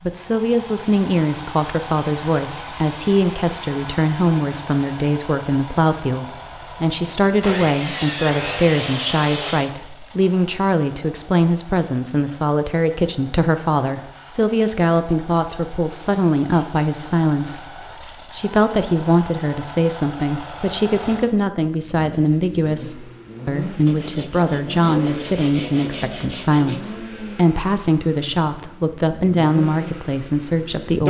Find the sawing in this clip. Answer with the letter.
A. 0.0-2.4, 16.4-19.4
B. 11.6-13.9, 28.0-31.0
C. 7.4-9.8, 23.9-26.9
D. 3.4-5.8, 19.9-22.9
C.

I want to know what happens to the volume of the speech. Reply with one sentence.
The loudness of the speech stays about the same.